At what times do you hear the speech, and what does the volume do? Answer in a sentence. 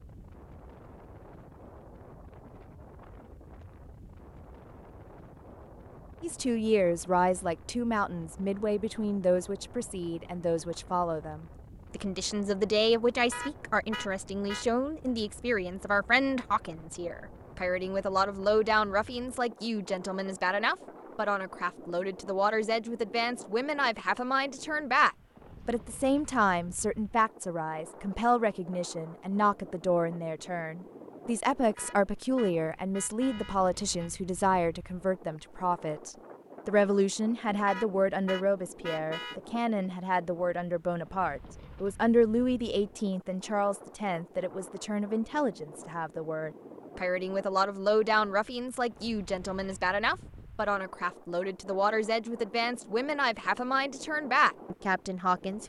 You can hear the speech from 6.2 to 55.6 s, at a steady volume.